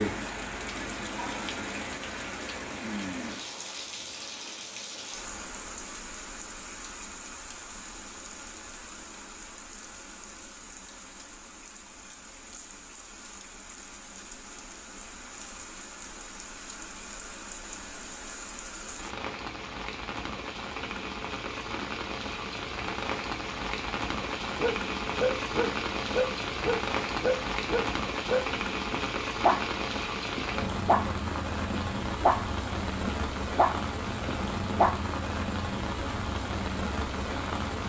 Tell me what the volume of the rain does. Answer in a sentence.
The loudness of the rain goes down, then up.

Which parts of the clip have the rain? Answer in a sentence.
The rain can be heard from 0.0 to 37.8 s.